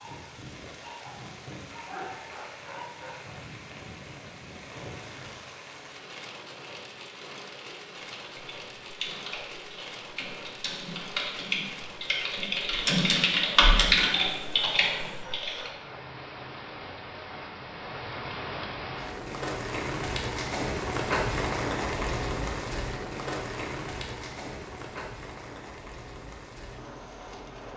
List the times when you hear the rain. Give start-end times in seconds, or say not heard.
0.0-27.7.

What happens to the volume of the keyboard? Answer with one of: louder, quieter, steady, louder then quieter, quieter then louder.
louder.